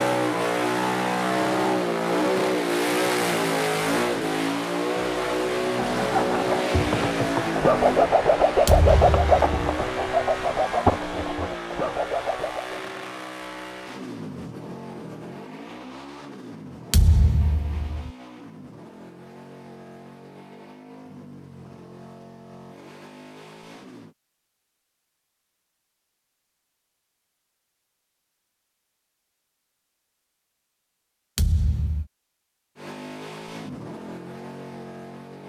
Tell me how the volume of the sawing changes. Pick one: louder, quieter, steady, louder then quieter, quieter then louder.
louder then quieter.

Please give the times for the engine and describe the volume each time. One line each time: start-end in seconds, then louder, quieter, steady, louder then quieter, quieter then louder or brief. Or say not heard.
0.0-24.1 quieter
32.8-35.4 brief.